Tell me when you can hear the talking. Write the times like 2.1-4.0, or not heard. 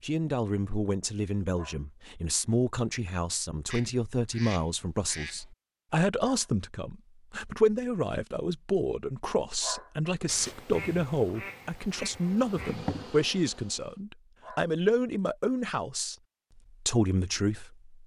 0.0-17.9.